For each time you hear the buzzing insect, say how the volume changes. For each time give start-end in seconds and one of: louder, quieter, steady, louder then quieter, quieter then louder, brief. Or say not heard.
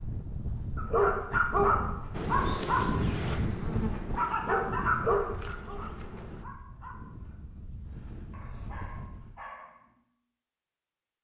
2.1-6.5 quieter.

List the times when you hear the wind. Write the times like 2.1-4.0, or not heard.
0.0-9.4.